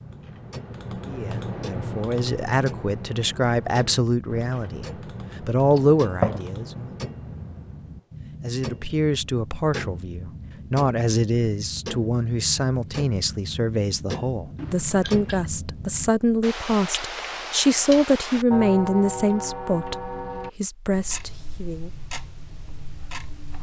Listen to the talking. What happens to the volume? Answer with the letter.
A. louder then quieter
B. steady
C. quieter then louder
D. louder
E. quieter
B.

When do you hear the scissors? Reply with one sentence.
You can hear the scissors from 5.7 to 6.5 s and from 14.6 to 15.4 s.